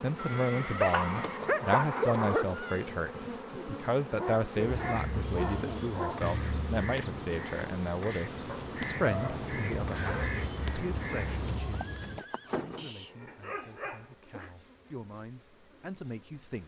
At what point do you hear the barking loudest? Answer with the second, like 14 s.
2 s.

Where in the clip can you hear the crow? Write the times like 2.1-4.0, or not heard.
4.6-12.2.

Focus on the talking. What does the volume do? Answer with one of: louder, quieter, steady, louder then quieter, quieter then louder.
quieter.